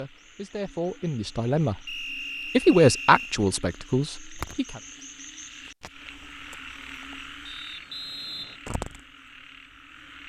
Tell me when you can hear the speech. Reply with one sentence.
The speech can be heard from 0.0 to 1.8 s and from 2.5 to 4.8 s.